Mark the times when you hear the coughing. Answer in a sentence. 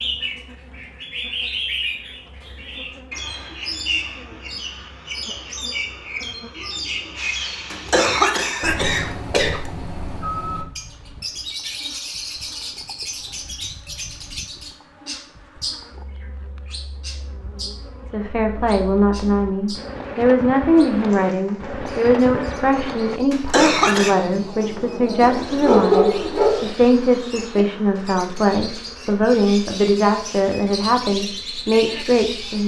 You can hear the coughing from 7.7 to 9.7 s and from 23.3 to 24.1 s.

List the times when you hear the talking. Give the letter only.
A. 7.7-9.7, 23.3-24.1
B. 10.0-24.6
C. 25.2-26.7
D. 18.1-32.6
D.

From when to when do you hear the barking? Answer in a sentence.
You can hear the barking from 25.2 to 26.7 s.